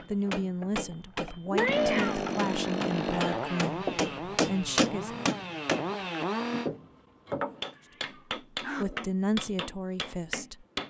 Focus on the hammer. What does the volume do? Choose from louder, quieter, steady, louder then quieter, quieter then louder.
louder then quieter.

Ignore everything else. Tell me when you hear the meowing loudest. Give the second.
2 s.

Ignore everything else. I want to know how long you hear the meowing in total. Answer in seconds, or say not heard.
2 s.